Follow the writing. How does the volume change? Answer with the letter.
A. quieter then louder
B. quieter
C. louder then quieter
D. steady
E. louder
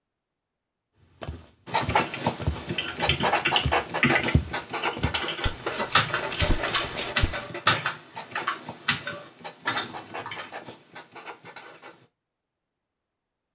B.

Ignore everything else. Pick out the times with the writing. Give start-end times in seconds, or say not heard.
1.6-12.1.